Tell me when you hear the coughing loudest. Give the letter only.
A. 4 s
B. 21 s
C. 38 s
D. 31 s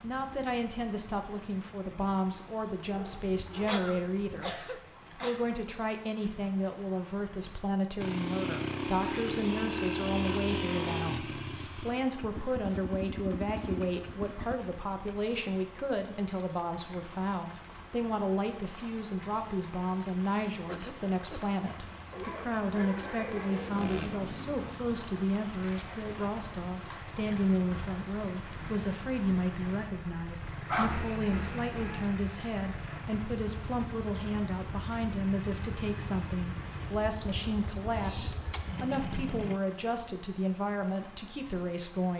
A.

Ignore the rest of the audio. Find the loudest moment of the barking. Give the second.
31 s.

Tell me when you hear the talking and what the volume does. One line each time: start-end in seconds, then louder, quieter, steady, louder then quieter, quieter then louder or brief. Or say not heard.
0.0-42.1 steady.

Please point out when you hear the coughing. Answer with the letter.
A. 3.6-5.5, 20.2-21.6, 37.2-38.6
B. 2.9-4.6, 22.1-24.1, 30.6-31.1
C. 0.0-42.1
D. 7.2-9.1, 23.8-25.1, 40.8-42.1
A.